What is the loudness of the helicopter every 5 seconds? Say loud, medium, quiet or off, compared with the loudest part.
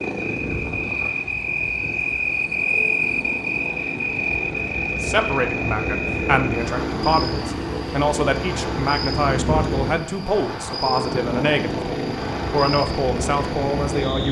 medium, loud, loud.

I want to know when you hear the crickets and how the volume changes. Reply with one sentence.
The crickets can be heard from 0.0 to 14.2 s, getting quieter.